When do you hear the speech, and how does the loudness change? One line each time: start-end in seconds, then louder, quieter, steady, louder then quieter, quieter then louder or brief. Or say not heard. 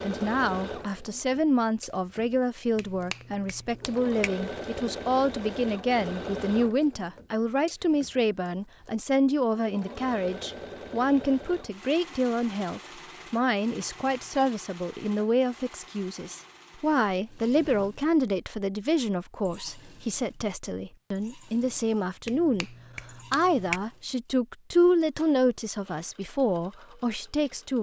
0.0-27.7 steady.